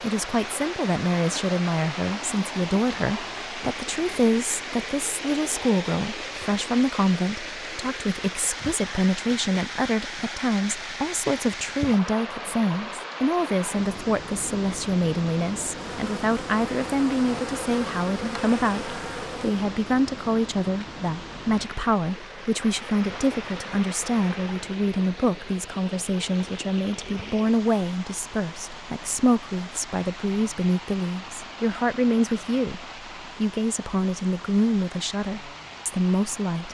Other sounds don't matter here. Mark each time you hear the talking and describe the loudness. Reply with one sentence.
You can hear the talking from 0.0 to 36.6 s, at a steady volume.